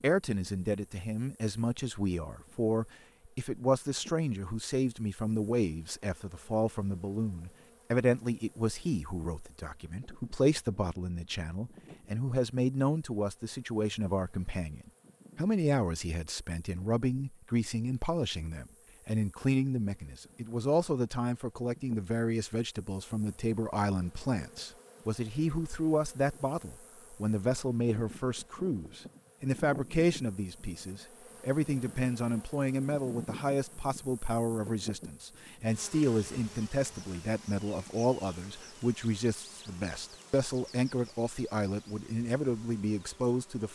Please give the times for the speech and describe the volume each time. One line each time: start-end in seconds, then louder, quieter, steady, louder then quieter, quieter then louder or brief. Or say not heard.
0.0-43.6 steady.